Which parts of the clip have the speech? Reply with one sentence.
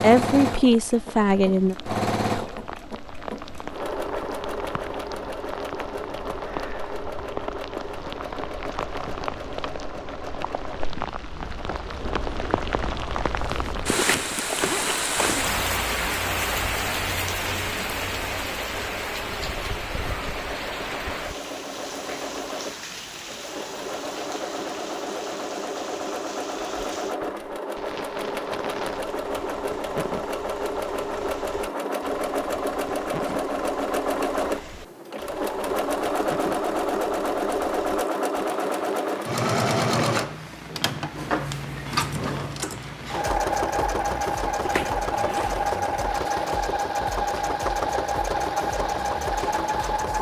You can hear the speech from 0.0 to 1.8 s.